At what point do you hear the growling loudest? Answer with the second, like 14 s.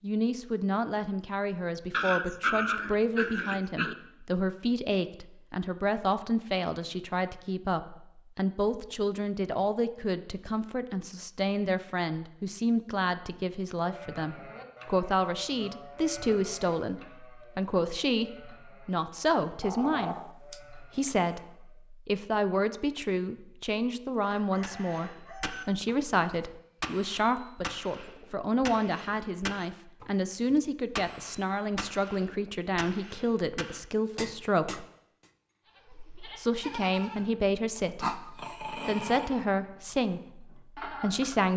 3 s.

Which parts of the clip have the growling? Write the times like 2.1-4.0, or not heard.
1.9-4.0, 19.6-20.6, 38.0-39.3.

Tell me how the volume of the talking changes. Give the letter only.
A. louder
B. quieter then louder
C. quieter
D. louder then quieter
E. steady
E.